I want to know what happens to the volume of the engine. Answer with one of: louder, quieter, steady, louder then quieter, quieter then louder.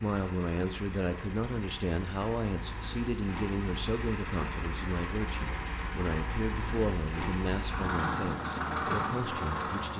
louder.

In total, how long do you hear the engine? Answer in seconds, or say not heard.
10 s.